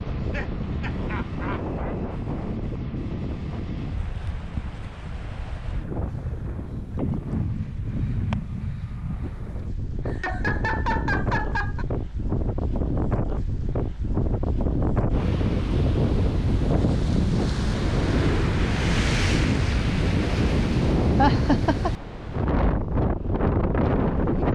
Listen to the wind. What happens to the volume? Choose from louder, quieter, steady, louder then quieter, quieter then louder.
louder.